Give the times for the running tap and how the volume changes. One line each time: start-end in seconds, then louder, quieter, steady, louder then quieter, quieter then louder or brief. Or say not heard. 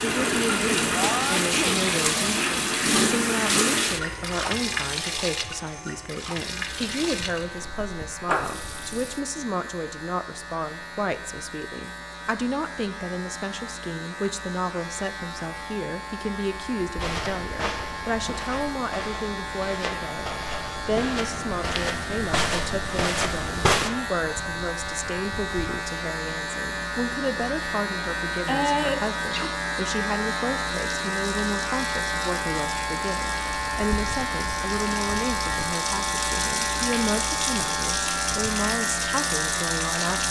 0.0-9.2 quieter
30.7-40.2 louder.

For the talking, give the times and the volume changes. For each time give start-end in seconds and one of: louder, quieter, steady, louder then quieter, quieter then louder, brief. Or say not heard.
0.0-40.2 steady.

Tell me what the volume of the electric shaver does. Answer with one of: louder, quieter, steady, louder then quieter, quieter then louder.
louder.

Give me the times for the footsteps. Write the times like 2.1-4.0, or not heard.
16.9-23.9.